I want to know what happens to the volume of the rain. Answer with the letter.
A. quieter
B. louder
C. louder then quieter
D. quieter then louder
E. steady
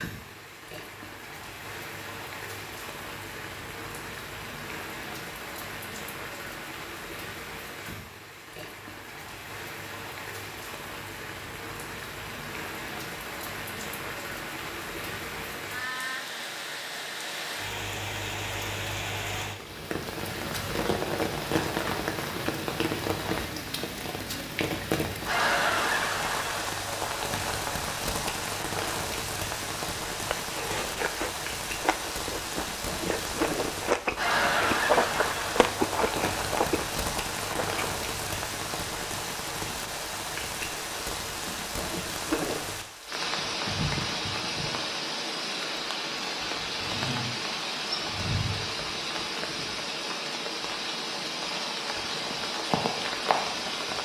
B.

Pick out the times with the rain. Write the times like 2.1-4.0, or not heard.
0.0-53.9.